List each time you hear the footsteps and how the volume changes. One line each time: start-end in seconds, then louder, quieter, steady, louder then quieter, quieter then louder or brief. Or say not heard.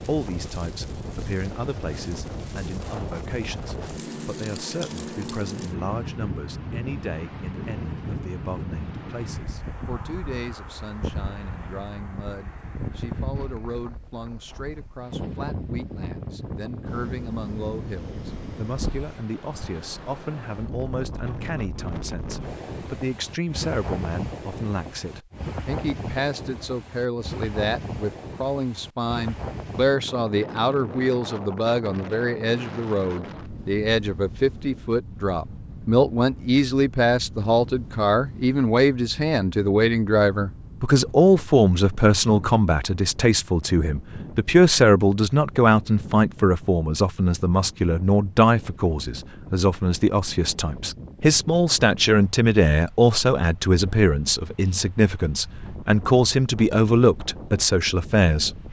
not heard.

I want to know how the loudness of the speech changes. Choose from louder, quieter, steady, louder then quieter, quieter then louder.
louder.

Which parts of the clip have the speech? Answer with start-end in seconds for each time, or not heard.
0.0-58.5.